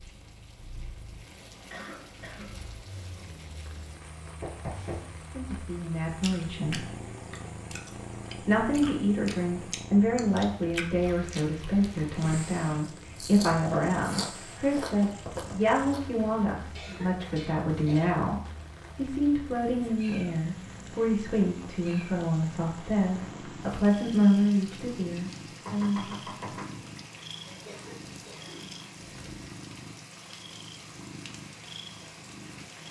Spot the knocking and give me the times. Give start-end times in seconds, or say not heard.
4.4-5.1, 14.8-15.6, 25.6-26.9.